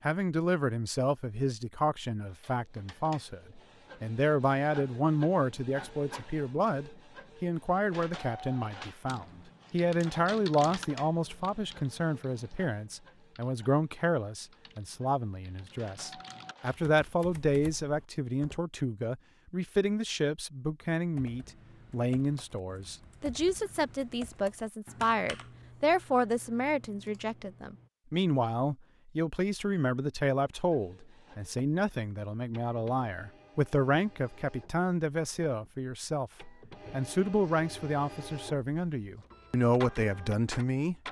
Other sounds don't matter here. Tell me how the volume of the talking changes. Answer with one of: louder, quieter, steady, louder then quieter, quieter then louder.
steady.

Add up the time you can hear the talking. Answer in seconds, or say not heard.
41 s.